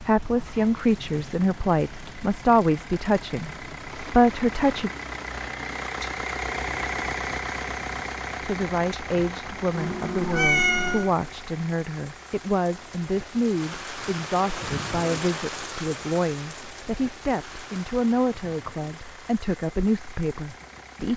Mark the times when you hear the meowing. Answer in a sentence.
The meowing can be heard from 9.8 to 11.1 s.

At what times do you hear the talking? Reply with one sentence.
The talking can be heard from 0.1 to 4.9 s and from 8.4 to 21.1 s.